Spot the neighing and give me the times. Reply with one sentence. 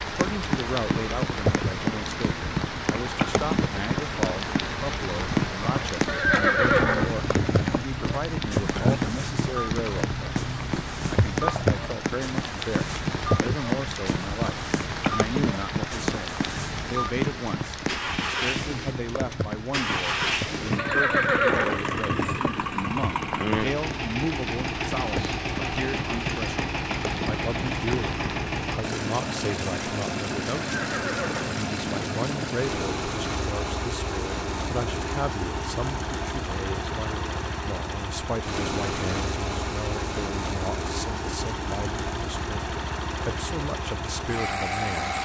You can hear the neighing from 6.0 to 7.8 s, from 20.8 to 22.6 s and from 30.6 to 32.5 s.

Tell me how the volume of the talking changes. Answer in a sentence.
The loudness of the talking stays about the same.